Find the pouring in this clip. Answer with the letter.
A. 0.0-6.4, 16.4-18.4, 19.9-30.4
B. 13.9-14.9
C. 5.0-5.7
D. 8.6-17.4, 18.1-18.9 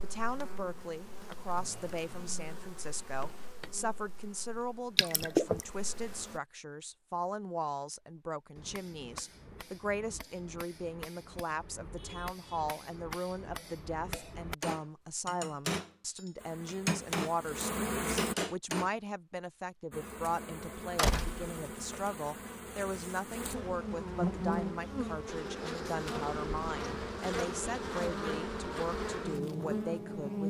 C.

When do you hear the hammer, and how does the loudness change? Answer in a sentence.
The hammer can be heard from 8.6 to 17.4 s, getting louder; and briefly from 18.1 to 18.9 s.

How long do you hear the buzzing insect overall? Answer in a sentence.
You can hear the buzzing insect for 19 seconds altogether.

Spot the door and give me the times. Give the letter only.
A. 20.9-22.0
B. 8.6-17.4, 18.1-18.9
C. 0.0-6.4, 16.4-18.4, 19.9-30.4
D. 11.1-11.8
A.